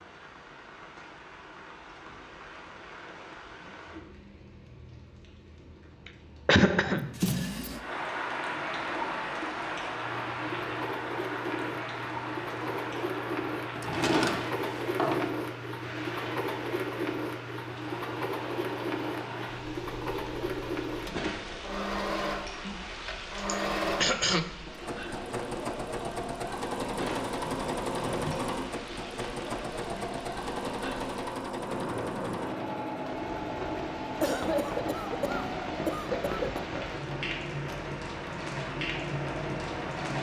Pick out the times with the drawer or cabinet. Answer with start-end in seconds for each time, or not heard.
6.8-7.8, 13.8-15.3, 27.4-28.4.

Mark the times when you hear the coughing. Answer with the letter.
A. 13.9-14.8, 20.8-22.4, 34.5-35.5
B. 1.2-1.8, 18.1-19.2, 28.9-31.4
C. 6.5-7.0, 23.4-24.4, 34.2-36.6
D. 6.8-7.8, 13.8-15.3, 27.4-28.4
C.